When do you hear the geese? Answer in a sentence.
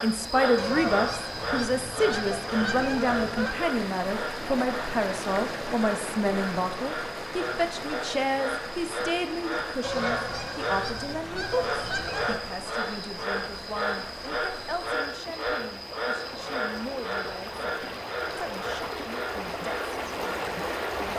You can hear the geese from 0.6 to 3.5 s, from 9.8 to 12.4 s and from 16.2 to 18.8 s.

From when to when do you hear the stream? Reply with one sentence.
The stream can be heard from 0.0 to 21.1 s.